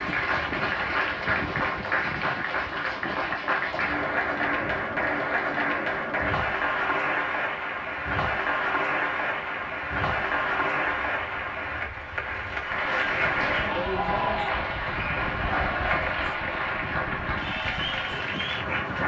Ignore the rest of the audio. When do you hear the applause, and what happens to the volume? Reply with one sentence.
You can hear the applause from 0.0 to 19.0 s, at a steady volume.